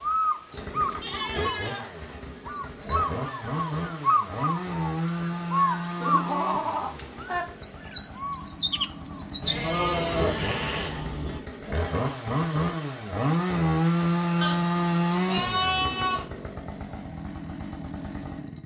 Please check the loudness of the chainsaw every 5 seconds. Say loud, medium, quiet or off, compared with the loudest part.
medium, medium, loud, medium.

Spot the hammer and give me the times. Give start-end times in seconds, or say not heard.
not heard.